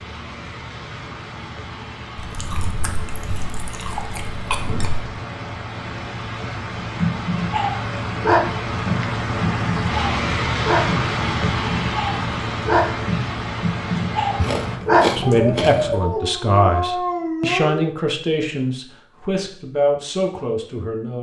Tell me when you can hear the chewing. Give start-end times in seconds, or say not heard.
2.1-5.2, 14.4-16.0.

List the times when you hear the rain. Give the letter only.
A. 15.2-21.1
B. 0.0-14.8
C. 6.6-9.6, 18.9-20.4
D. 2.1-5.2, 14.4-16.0
B.